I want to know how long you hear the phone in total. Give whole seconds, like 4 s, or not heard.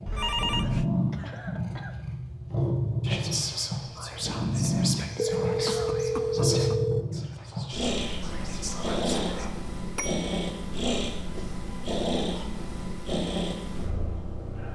3 s.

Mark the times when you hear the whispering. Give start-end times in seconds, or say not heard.
3.0-9.5.